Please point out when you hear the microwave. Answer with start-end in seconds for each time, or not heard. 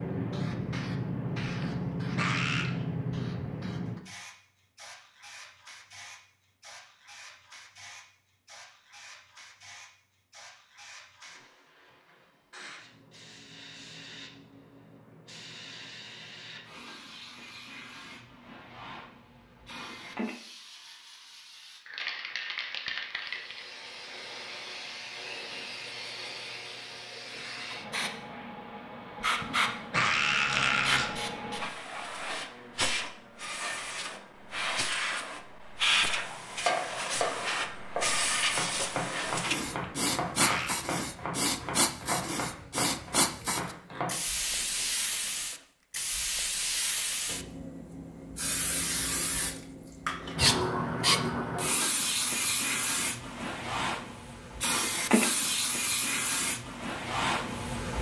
not heard.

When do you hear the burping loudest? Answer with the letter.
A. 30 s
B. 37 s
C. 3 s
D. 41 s
A.